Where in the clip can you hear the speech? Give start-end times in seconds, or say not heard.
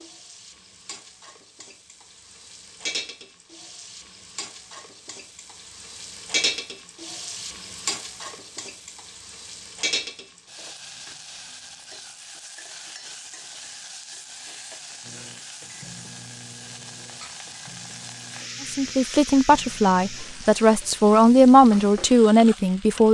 18.6-23.0.